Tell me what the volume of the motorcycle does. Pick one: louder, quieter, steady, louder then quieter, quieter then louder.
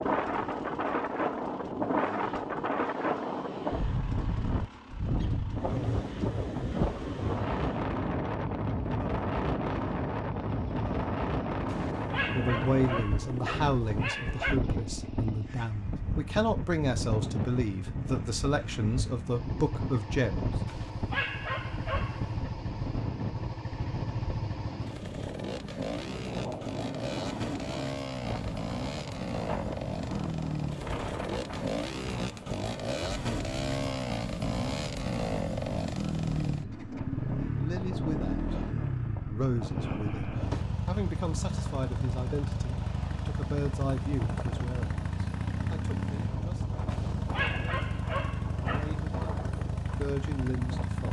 louder.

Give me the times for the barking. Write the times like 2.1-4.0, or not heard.
11.7-14.6, 20.6-22.5, 46.9-49.0.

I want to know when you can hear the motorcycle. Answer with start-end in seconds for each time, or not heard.
0.0-51.0.